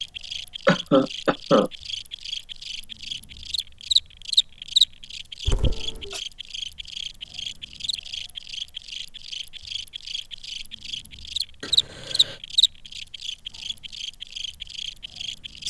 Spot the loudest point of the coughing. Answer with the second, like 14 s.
1 s.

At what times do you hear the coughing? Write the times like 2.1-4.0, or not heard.
0.7-1.7, 5.5-6.2, 11.6-12.4.